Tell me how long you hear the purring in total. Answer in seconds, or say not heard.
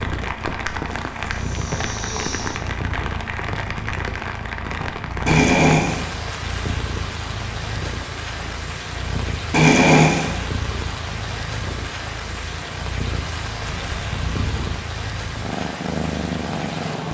17 s.